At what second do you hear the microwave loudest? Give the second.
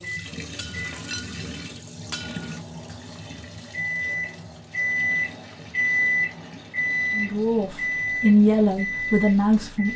6 s.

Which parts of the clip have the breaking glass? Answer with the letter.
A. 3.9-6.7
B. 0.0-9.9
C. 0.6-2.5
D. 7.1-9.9
C.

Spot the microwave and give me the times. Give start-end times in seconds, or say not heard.
0.0-9.9.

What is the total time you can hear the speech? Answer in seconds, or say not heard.
3 s.